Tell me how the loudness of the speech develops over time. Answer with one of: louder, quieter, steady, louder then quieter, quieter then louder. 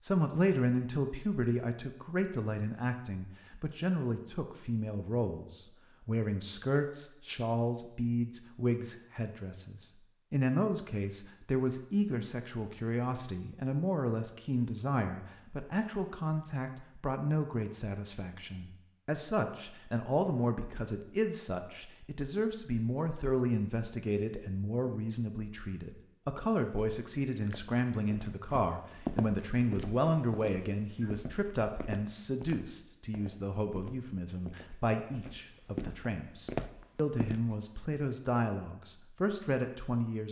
steady.